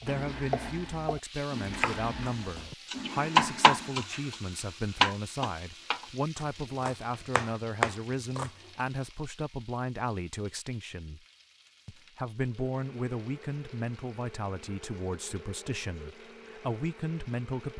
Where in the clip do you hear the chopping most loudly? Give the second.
4 s.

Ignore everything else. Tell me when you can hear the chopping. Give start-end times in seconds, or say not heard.
0.0-8.5.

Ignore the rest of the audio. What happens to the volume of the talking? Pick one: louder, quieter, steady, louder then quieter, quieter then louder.
steady.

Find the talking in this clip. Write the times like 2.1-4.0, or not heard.
0.0-11.2, 11.8-17.7.